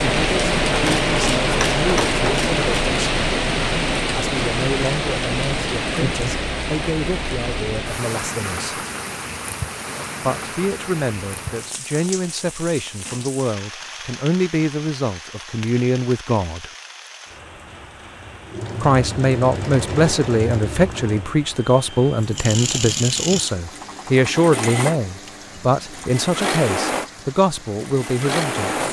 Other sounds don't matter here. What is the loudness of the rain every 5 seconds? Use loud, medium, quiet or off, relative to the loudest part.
loud, medium, quiet, quiet, quiet, quiet.